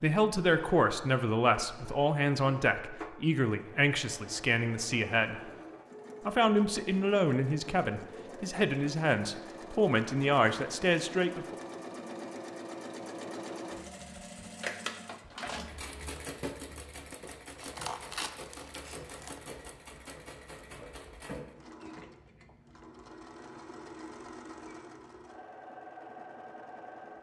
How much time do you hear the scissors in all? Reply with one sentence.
You can hear the scissors for 2 seconds altogether.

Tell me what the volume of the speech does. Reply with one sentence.
The loudness of the speech stays about the same.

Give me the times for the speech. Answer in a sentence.
The speech can be heard from 0.0 to 5.4 s and from 6.2 to 11.6 s.